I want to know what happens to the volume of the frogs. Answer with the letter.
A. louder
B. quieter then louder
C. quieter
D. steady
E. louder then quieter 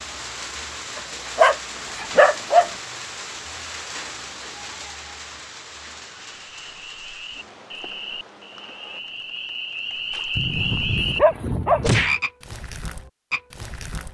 E.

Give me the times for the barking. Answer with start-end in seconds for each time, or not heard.
1.4-2.7, 10.3-12.0.